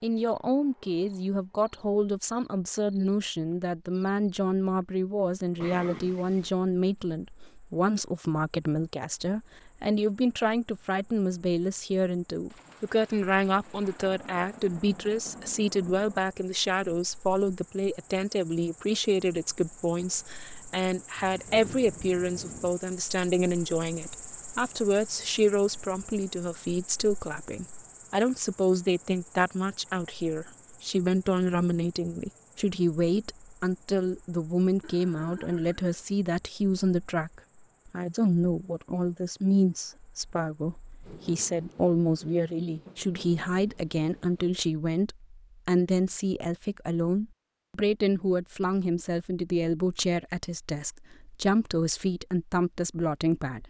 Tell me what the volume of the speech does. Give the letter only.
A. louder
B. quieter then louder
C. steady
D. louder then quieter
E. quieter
C.